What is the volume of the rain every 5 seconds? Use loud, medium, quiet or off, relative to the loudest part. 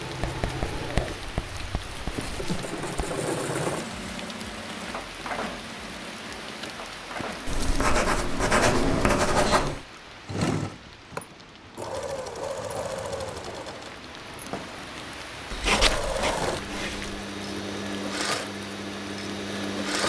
loud, loud, medium, loud.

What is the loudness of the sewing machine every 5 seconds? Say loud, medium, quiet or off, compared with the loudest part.
loud, medium, loud, loud.